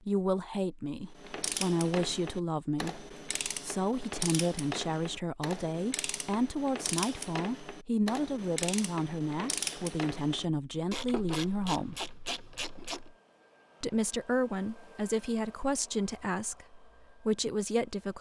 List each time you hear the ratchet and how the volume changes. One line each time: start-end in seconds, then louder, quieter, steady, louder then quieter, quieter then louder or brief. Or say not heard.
1.1-13.2 steady.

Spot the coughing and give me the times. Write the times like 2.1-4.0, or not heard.
not heard.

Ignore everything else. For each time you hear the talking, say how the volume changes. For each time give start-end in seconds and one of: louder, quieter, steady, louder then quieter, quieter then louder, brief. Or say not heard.
0.1-12.0 steady
13.8-18.1 quieter then louder.